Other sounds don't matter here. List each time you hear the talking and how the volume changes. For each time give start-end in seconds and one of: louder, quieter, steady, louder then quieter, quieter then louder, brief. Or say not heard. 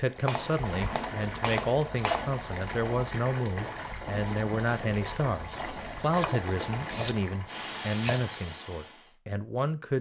0.0-9.9 steady.